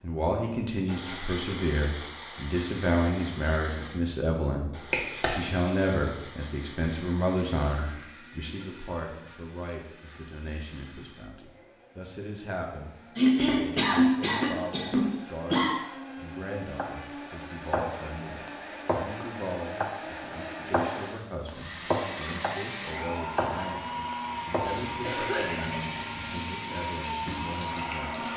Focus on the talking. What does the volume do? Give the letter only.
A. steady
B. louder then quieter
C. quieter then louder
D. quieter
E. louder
D.